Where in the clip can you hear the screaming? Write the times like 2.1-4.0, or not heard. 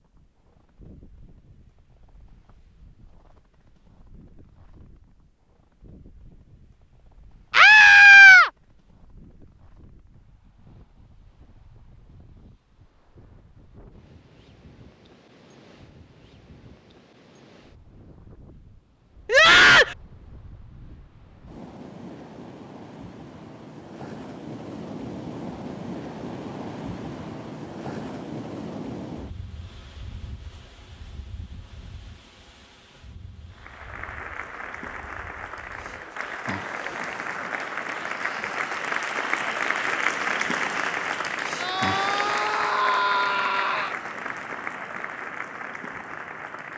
7.5-8.5, 19.2-19.9, 41.6-44.0.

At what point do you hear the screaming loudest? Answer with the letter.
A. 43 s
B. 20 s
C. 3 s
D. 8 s
D.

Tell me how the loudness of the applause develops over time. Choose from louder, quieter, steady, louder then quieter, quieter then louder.
louder then quieter.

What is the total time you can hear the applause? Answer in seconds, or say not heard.
13 s.